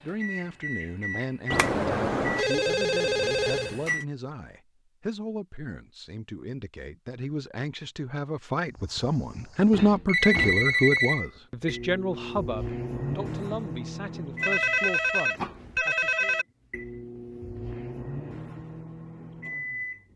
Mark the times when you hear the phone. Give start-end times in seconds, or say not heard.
1.5-3.8, 10.1-11.2, 14.4-16.4.